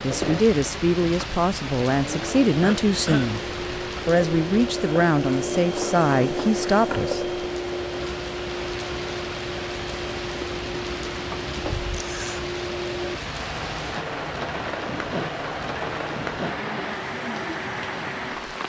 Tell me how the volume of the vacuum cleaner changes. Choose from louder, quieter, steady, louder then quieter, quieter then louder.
louder then quieter.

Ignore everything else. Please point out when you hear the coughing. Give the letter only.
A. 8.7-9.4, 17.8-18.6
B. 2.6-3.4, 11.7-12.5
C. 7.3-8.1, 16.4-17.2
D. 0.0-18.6
B.